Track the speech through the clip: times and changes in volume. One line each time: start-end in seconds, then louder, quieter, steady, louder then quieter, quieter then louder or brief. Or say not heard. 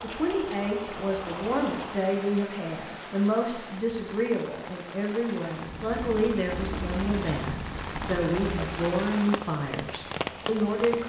0.0-11.0 steady.